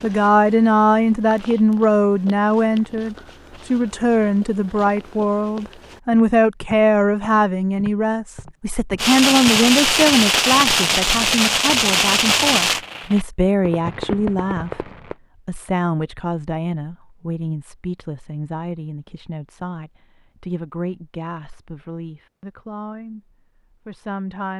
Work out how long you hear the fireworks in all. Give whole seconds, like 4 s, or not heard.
6 s.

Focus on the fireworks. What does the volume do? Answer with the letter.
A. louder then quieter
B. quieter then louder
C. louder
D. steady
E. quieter
E.